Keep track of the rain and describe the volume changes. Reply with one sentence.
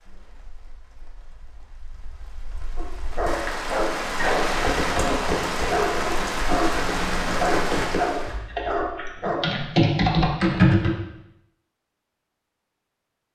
The loudness of the rain goes up.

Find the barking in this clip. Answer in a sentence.
The barking can be heard from 2.8 to 9.5 s.